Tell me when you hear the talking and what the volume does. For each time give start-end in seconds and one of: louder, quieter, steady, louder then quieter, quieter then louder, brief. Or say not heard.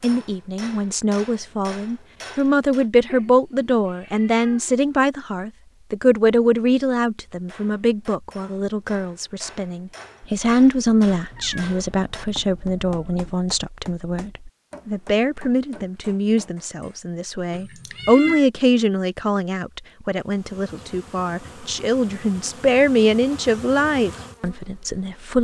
0.0-25.4 steady.